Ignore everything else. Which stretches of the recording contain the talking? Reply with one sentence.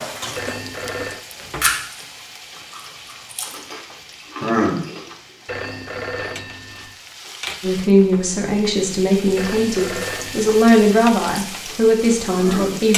You can hear the talking from 7.6 to 12.9 s.